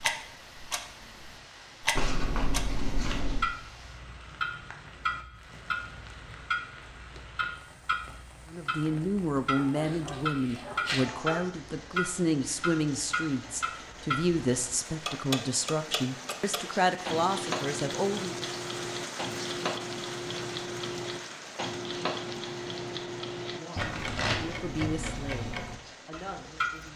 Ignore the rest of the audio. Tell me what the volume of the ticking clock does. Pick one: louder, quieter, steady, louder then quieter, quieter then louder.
steady.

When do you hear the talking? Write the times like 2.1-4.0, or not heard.
8.5-18.4, 23.5-26.9.